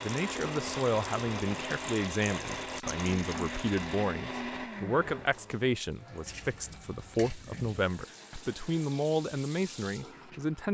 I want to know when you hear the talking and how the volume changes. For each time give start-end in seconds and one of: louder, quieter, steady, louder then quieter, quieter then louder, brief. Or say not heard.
0.0-10.6 steady.